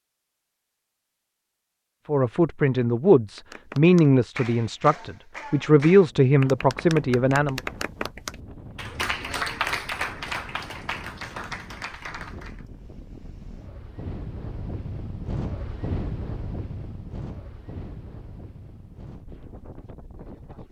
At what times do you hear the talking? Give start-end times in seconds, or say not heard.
2.0-7.6.